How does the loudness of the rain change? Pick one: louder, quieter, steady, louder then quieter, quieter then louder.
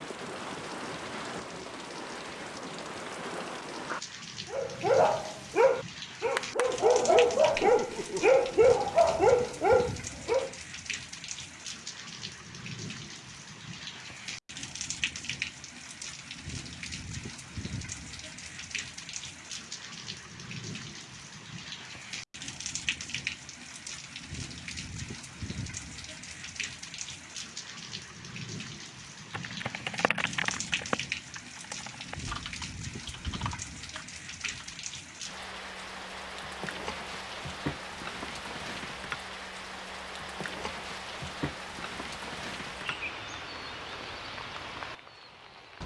steady.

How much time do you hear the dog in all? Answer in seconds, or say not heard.
6 s.